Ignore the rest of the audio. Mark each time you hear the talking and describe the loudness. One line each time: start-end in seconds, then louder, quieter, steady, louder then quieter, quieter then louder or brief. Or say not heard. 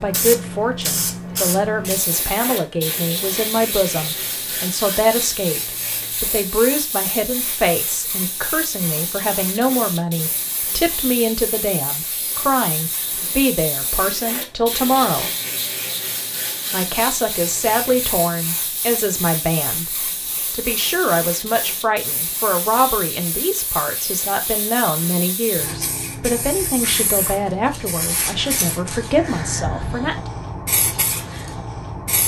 0.0-15.3 steady
16.7-30.3 steady.